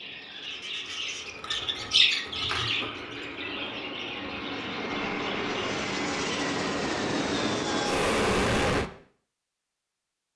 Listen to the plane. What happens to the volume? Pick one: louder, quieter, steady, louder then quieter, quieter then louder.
louder.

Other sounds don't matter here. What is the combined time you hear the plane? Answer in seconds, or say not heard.
9 s.